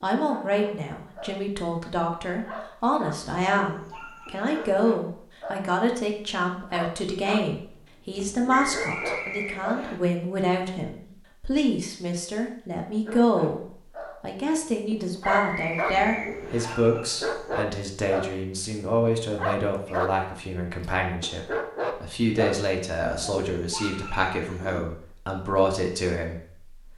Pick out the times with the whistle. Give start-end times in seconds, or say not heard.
8.6-10.0, 15.2-16.8.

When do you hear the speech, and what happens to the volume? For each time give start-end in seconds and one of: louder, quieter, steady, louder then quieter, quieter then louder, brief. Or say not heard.
0.0-26.9 steady.